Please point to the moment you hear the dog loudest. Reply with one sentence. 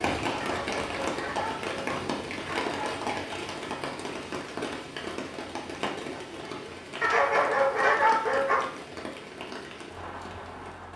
The loudest moment of the dog is at 8 seconds.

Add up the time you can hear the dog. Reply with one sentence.
You can hear the dog for 4 seconds altogether.